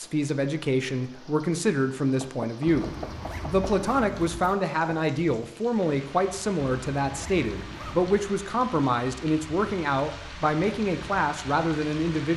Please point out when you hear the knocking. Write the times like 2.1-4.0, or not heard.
2.2-3.8.